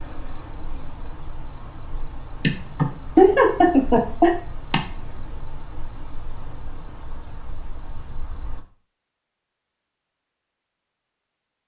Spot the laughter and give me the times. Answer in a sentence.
The laughter can be heard from 2.4 to 4.8 s.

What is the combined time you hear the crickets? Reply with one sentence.
You can hear the crickets for 9 seconds altogether.